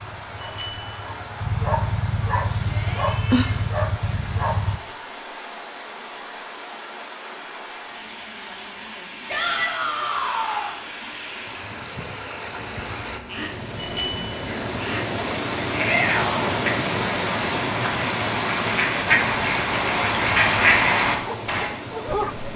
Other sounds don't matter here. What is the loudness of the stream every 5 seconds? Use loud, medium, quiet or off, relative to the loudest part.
medium, medium, medium, loud, medium.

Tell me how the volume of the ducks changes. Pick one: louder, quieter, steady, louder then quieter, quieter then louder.
louder.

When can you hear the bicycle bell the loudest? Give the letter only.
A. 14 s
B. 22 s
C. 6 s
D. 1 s
A.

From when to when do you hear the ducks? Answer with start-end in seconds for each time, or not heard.
12.5-21.7.